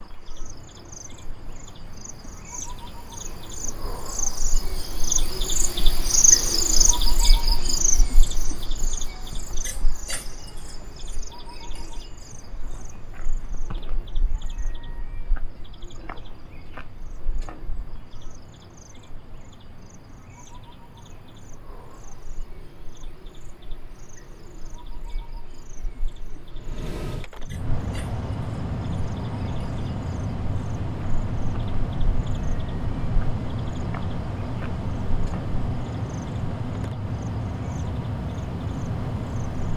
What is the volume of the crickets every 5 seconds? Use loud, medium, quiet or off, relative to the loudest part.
quiet, loud, quiet, quiet, quiet, quiet, quiet, quiet.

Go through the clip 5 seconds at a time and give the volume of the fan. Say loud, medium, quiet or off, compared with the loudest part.
quiet, quiet, quiet, quiet, quiet, loud, loud, loud.